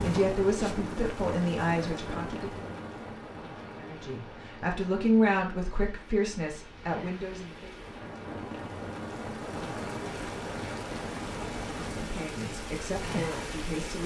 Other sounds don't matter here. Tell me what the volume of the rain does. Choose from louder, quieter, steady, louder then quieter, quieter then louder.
quieter then louder.